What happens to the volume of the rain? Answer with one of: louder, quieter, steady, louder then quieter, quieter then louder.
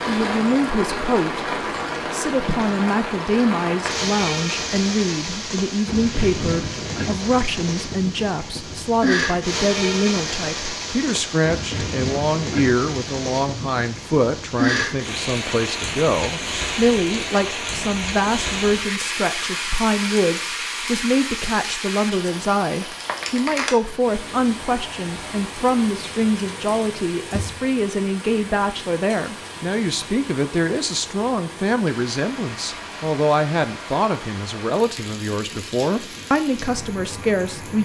quieter.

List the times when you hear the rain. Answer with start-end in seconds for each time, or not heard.
0.0-37.7.